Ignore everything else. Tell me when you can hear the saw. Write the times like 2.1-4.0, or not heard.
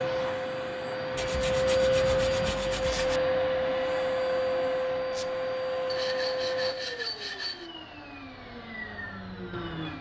1.1-3.2, 5.8-7.7.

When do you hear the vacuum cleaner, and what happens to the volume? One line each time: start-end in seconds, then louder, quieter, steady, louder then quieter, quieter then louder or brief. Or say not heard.
0.0-9.9 quieter.